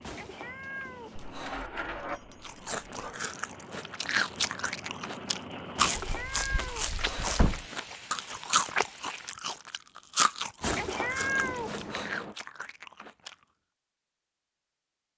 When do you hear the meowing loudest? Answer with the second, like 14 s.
11 s.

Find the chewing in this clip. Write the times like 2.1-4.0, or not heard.
2.4-13.3.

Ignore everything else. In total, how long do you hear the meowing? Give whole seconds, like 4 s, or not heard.
5 s.